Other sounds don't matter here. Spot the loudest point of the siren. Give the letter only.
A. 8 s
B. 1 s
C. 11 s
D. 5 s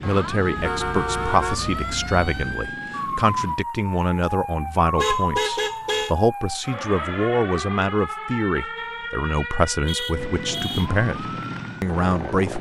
D.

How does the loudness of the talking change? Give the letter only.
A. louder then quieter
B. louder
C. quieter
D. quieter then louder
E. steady
E.